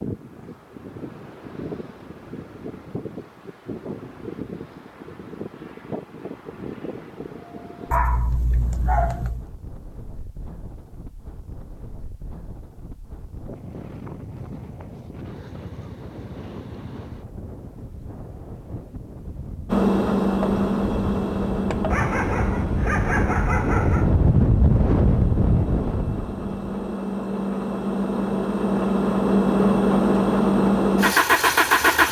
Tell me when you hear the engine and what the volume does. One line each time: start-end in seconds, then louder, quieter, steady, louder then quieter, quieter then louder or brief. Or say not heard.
19.6-32.0 quieter then louder.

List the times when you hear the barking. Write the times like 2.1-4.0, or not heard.
7.9-9.4, 21.9-24.1.